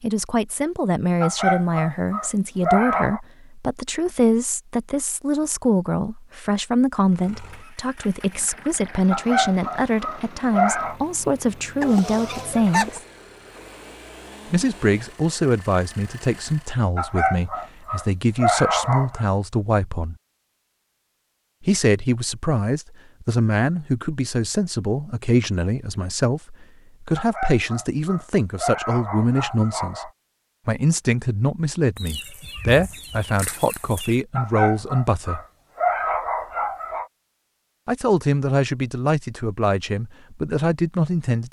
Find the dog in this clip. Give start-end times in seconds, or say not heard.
1.2-3.2, 9.1-10.9, 16.9-19.2, 27.1-30.1, 34.4-37.0.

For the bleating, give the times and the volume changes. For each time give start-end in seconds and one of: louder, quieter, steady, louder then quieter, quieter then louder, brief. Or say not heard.
not heard.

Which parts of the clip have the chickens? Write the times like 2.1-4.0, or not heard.
11.8-13.0, 31.9-34.2.